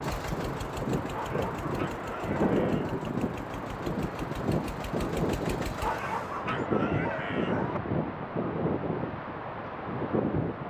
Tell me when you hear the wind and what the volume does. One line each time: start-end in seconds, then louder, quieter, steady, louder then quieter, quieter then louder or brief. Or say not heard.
0.0-10.6 steady.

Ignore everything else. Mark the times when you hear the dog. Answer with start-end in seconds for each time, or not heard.
1.1-3.1, 5.8-7.8.